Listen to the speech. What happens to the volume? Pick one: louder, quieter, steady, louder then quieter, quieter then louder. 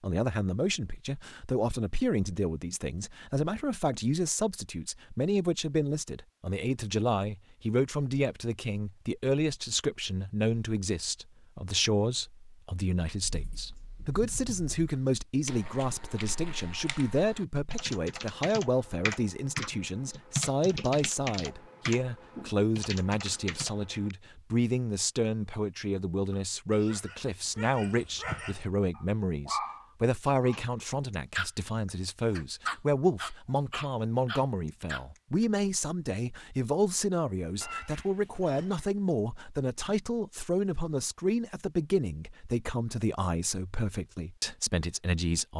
steady.